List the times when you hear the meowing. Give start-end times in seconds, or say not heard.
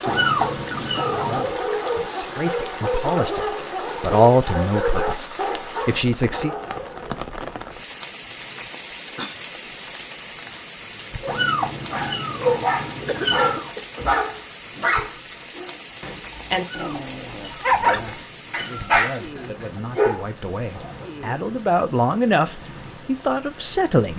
0.1-1.5, 11.2-13.7, 16.6-19.0.